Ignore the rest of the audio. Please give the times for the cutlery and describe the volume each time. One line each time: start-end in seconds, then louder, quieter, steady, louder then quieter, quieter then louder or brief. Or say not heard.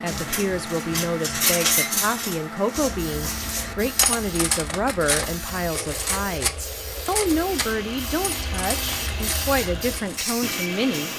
0.1-10.3 quieter.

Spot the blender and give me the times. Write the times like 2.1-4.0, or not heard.
0.0-11.1.